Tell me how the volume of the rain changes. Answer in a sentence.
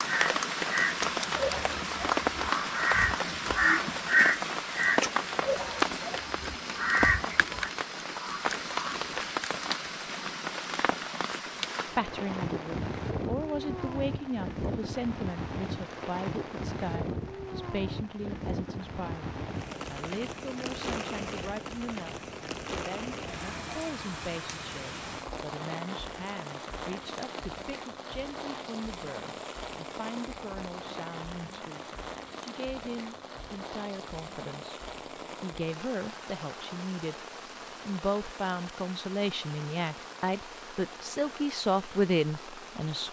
The loudness of the rain goes down.